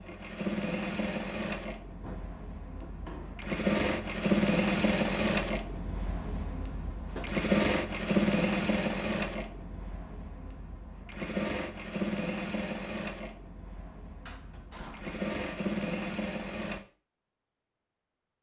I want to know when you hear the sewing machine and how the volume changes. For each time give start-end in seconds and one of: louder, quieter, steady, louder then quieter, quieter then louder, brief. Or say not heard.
0.0-16.8 louder then quieter.